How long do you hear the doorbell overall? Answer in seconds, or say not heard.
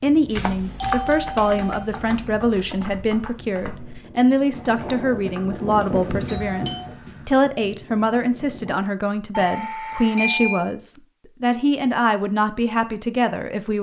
3 s.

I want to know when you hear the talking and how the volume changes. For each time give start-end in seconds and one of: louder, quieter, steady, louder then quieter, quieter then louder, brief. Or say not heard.
0.0-13.7 steady.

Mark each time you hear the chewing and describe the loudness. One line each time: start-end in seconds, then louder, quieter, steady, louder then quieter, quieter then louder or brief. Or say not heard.
not heard.